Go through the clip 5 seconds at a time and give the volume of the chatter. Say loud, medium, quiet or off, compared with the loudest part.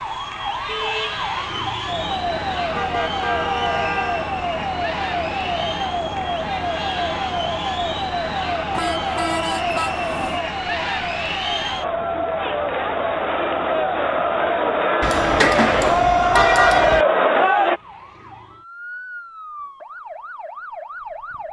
quiet, quiet, medium, loud, off.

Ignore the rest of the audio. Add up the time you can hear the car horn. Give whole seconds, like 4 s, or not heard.
5 s.